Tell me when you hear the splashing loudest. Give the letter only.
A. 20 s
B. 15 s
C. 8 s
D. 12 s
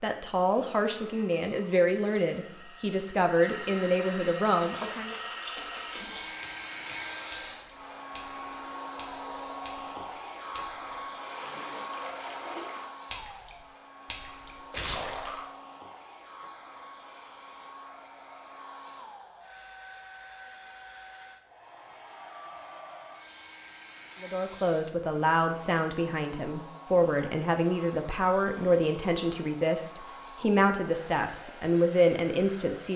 B.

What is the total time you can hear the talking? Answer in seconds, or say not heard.
14 s.